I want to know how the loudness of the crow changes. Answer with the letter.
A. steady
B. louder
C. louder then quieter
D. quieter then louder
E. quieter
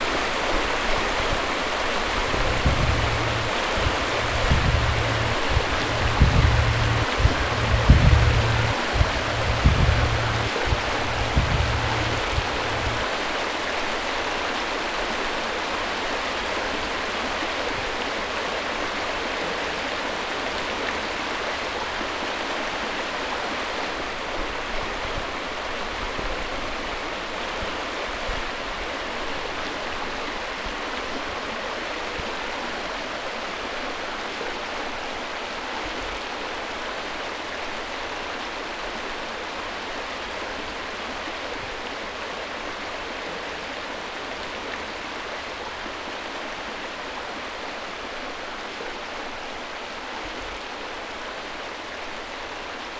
C.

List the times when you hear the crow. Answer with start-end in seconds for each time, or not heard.
2.2-13.1.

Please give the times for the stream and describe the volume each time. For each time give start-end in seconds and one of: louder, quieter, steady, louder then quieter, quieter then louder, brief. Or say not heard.
0.0-52.9 quieter.